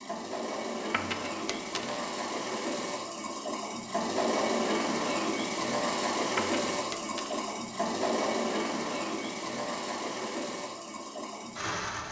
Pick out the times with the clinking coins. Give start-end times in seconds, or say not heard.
0.9-2.0, 6.3-7.5.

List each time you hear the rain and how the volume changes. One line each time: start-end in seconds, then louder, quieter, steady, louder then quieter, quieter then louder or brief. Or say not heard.
not heard.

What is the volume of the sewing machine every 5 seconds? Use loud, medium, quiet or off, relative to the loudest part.
loud, loud, medium.